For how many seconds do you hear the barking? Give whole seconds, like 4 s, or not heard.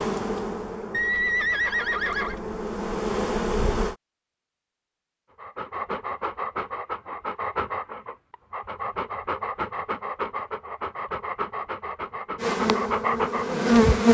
8 s.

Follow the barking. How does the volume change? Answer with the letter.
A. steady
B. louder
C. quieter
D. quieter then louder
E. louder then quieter
A.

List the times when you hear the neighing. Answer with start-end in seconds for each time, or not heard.
0.9-2.4.